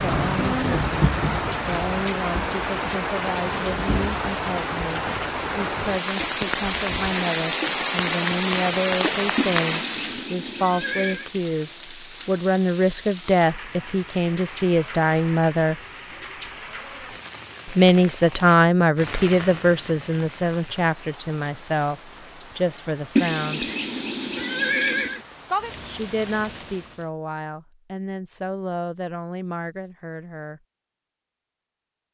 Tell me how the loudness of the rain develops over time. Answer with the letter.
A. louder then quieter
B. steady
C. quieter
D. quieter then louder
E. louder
C.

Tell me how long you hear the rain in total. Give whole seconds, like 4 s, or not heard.
27 s.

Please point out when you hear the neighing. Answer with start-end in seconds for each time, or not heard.
9.3-11.3, 23.1-25.2.